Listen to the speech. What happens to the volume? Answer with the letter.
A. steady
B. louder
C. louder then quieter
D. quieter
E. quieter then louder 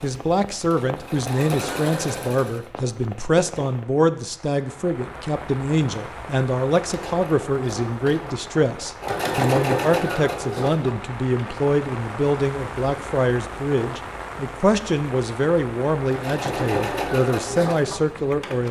A.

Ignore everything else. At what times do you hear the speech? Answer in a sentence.
The speech can be heard from 0.0 to 18.6 s.